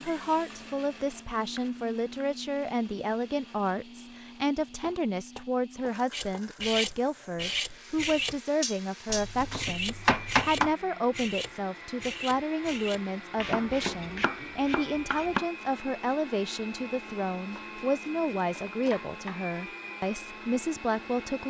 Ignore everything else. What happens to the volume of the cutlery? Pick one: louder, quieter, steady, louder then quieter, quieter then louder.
quieter.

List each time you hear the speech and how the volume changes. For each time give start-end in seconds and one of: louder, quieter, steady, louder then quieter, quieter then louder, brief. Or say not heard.
0.0-21.4 steady.